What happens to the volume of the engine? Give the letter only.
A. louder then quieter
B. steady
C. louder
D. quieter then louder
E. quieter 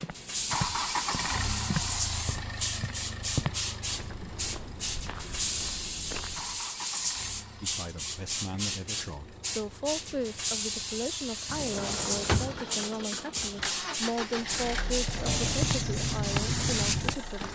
D.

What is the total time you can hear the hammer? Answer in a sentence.
You can't hear the hammer here.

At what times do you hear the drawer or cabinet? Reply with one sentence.
The drawer or cabinet can be heard from 11.4 to 12.6 s.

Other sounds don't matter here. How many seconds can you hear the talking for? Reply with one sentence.
The talking can be heard for 10 seconds in total.